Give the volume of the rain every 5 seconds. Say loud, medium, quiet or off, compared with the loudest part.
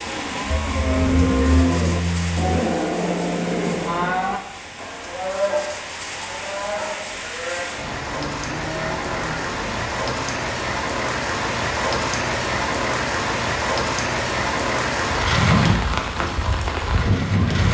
medium, medium, loud, loud.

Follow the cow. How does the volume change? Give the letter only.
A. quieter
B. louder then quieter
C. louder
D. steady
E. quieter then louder
A.